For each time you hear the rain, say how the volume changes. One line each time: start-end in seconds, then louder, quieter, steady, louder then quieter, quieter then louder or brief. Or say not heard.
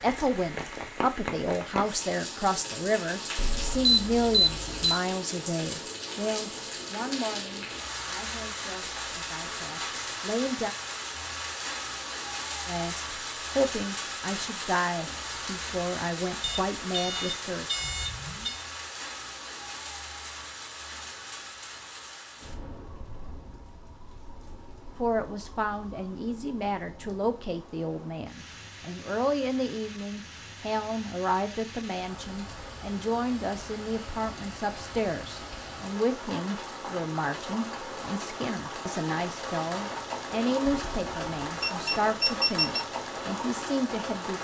0.0-44.4 quieter then louder.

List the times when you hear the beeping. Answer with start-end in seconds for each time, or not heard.
3.4-5.0, 16.4-18.6, 40.6-42.8.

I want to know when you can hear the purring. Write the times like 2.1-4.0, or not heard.
not heard.